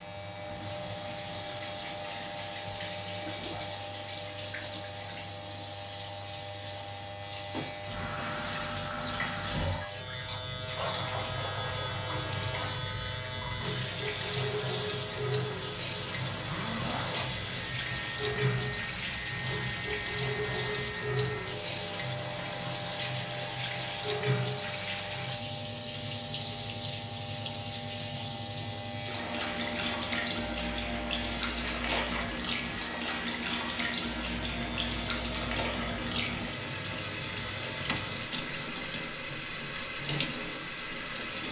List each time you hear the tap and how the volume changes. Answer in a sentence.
The tap can be heard from 0.0 to 41.4 s, at a steady volume.